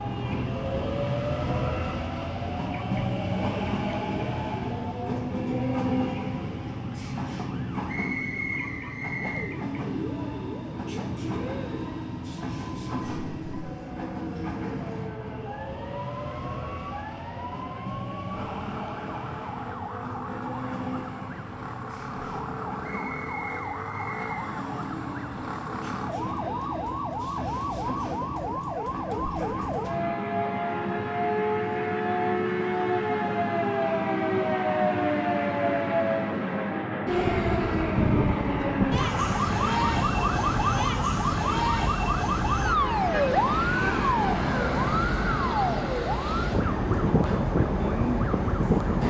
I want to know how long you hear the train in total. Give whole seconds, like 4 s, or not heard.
49 s.